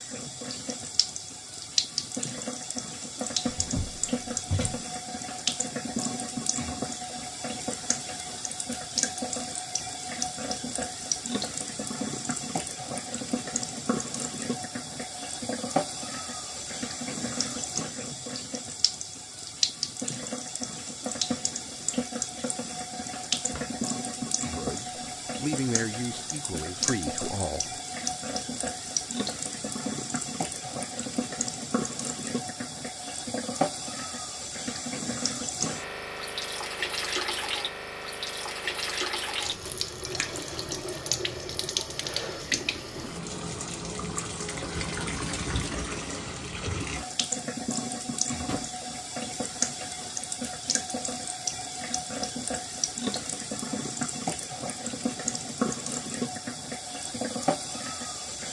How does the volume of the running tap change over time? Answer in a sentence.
The volume of the running tap stays about the same.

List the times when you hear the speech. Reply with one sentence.
You can hear the speech from 24.6 to 27.8 s.